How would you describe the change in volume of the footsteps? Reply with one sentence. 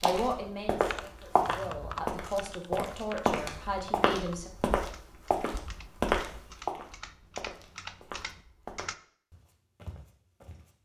The loudness of the footsteps goes down.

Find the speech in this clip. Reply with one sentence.
You can hear the speech from 0.0 to 4.5 s.